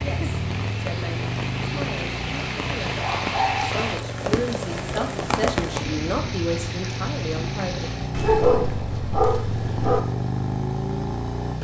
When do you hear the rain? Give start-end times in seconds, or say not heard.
0.0-8.2.